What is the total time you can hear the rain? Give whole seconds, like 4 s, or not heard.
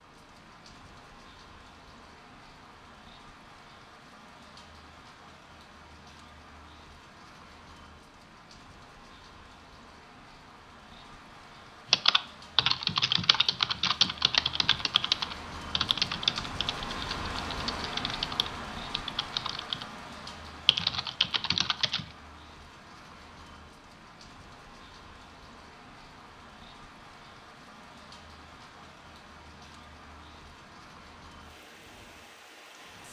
33 s.